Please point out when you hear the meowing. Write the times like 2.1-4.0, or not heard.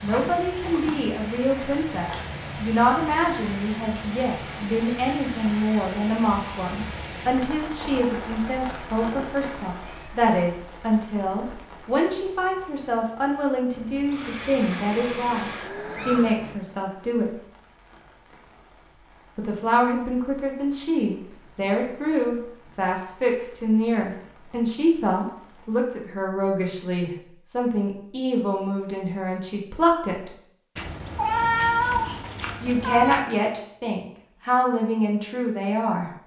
8.7-10.2, 15.8-16.6, 30.8-33.2.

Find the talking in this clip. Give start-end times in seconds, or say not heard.
0.0-17.3, 19.4-30.3, 32.6-36.1.